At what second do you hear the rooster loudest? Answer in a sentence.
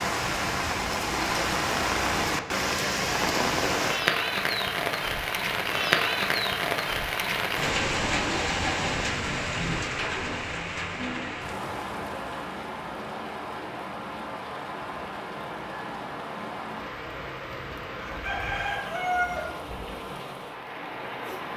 The loudest moment of the rooster is at 19 seconds.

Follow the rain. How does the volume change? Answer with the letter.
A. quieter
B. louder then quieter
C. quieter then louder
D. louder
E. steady
A.